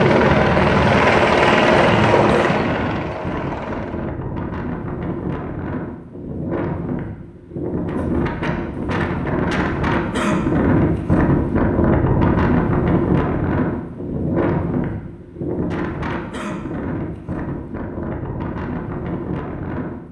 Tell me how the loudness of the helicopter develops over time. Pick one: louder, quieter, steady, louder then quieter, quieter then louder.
quieter.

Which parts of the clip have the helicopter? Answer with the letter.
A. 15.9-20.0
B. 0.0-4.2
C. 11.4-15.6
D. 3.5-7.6
B.